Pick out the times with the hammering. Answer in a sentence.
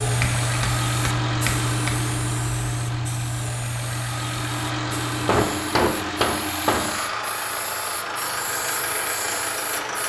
The hammering can be heard from 0.2 to 1.9 s and from 5.2 to 7.0 s.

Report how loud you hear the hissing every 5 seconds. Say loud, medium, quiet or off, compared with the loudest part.
loud, medium.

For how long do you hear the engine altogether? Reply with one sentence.
You can hear the engine for 10 seconds altogether.